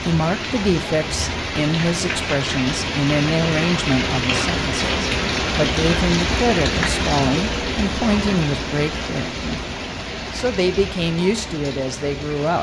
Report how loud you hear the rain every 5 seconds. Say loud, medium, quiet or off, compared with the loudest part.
loud, loud, medium.